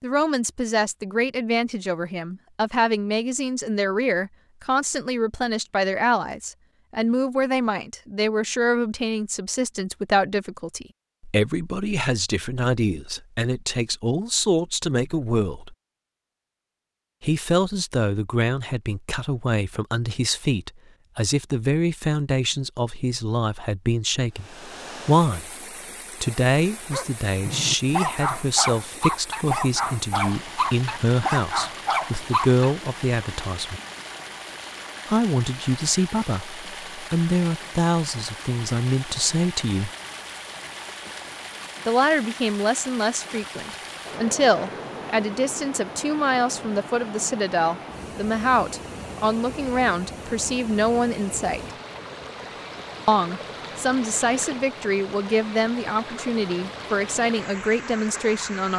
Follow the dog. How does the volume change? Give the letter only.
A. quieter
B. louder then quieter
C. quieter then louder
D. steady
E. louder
D.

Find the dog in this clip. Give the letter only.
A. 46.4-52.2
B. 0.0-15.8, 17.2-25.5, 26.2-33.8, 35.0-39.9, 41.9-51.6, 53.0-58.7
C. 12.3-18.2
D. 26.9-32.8
D.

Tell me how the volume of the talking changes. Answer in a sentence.
The volume of the talking stays about the same.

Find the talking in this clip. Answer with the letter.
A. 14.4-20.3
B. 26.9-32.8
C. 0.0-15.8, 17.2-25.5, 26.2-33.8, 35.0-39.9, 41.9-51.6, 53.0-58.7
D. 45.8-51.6
C.